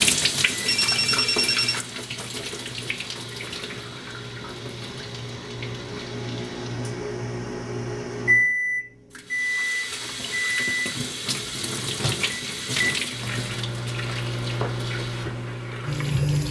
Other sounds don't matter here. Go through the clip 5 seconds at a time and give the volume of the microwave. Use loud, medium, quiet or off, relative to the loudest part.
quiet, loud, loud, medium.